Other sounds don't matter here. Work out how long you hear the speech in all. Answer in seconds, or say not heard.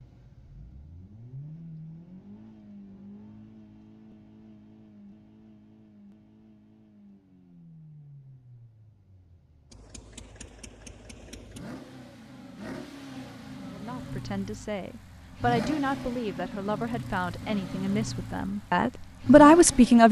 6 s.